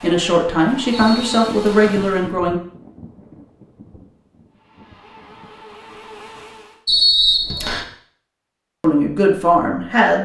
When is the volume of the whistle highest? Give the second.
7 s.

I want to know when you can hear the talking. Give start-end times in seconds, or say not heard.
0.0-2.6, 8.8-10.1.